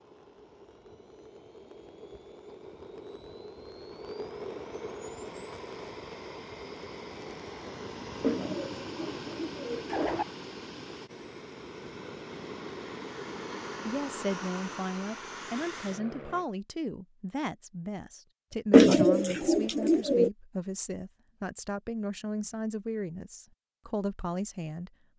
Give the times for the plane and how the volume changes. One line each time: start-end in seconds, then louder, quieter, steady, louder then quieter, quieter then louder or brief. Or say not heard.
0.0-16.4 louder.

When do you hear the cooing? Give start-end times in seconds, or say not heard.
8.2-10.2, 18.7-20.3.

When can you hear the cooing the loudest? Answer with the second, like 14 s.
19 s.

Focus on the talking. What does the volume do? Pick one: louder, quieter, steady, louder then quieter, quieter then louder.
steady.